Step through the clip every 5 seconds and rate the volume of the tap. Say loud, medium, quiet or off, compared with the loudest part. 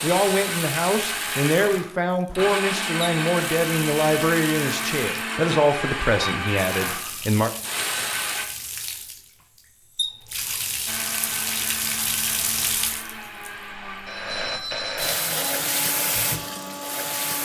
medium, medium, loud, loud.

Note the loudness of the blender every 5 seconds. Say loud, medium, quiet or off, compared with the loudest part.
loud, loud, medium, medium.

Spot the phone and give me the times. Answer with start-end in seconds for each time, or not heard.
14.1-15.4.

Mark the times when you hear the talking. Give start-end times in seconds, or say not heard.
0.0-7.5.